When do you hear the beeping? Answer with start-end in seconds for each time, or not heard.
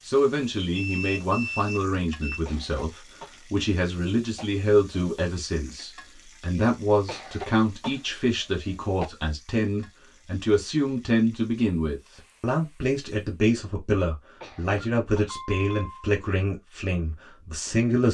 0.8-2.5, 14.8-16.1.